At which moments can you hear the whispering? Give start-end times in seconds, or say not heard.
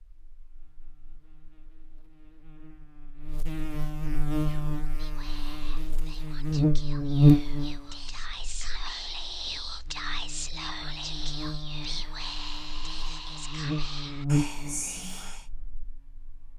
4.5-15.4.